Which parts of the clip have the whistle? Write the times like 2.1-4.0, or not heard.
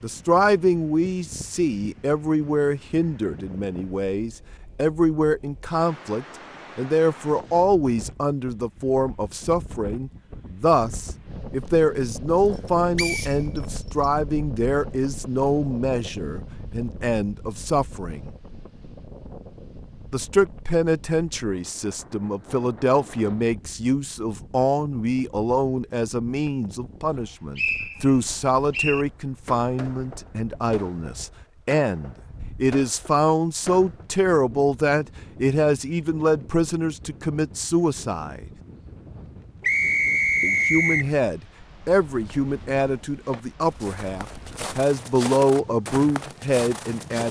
12.9-14.1, 27.6-29.1, 39.6-41.1.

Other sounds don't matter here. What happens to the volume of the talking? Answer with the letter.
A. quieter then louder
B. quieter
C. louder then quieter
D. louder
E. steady
E.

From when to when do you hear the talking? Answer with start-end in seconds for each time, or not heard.
0.0-18.3, 20.1-38.5, 40.4-47.2.